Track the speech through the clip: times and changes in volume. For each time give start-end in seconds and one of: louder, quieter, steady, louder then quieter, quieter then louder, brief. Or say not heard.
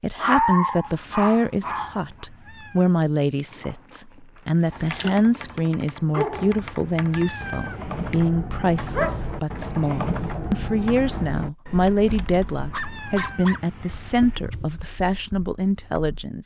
0.0-16.4 steady.